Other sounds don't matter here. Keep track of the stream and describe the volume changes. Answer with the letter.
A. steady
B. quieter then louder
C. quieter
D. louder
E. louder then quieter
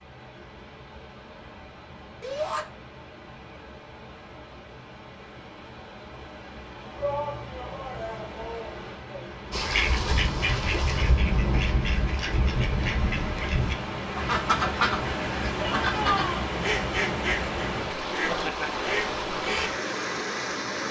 D.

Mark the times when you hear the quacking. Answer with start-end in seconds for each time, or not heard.
9.5-19.8.